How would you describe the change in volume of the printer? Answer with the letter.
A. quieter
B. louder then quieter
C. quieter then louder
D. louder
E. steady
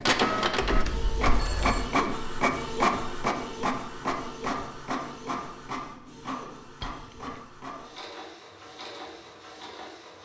A.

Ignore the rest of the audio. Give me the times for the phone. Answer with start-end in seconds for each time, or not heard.
0.6-1.9, 6.8-7.4.